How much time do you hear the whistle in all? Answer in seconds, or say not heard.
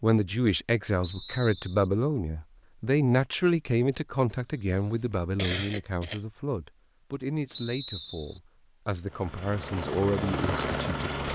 2 s.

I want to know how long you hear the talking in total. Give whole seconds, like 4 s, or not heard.
11 s.